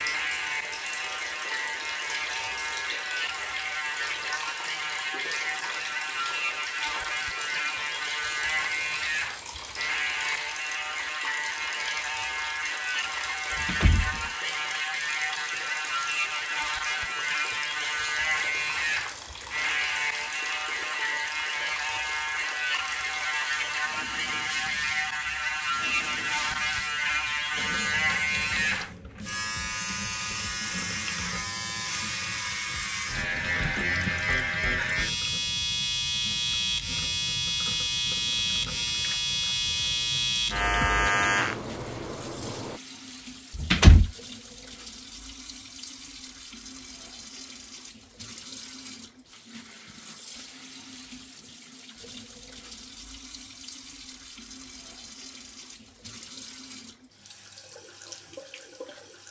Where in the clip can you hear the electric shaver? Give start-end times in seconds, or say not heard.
0.0-42.8.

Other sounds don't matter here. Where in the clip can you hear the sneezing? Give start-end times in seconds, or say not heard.
not heard.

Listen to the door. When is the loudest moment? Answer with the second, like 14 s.
44 s.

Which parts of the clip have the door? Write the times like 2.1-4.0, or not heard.
13.6-14.2, 43.5-44.1.